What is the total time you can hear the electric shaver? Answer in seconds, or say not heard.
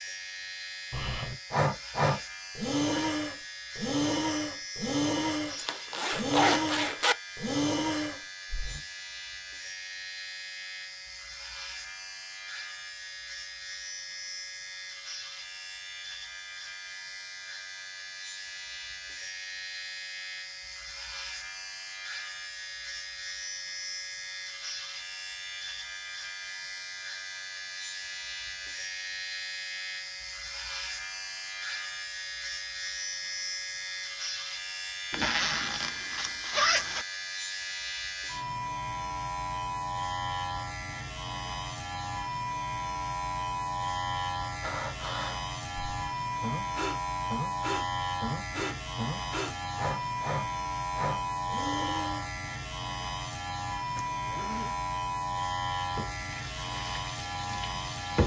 58 s.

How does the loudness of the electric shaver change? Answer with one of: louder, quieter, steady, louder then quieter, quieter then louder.
louder.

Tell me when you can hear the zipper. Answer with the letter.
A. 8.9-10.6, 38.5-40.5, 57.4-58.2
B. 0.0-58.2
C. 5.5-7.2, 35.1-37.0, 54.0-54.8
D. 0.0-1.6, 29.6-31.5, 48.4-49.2
C.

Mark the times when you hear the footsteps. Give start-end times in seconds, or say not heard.
not heard.